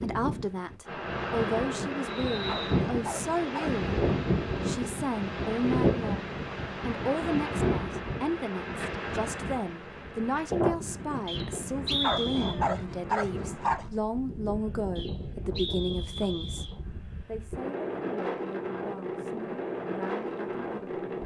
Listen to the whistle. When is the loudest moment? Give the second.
12 s.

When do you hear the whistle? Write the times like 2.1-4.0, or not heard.
2.0-2.8, 11.2-12.6, 14.9-16.8.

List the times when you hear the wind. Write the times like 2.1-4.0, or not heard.
0.0-21.2.